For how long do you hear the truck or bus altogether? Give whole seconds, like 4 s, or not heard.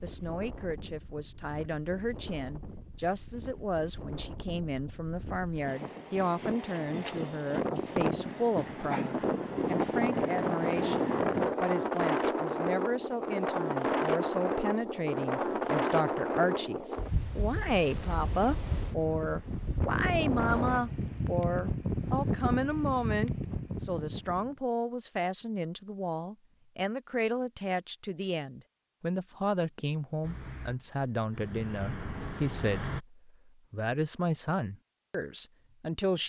3 s.